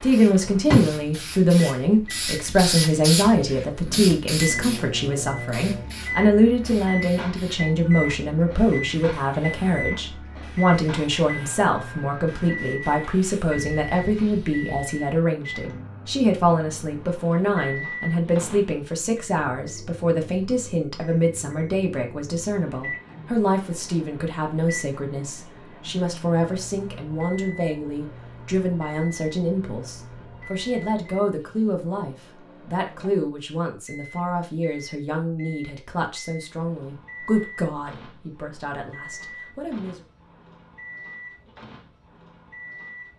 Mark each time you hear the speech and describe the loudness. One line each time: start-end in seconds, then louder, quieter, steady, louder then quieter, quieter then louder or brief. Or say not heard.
0.0-40.0 quieter.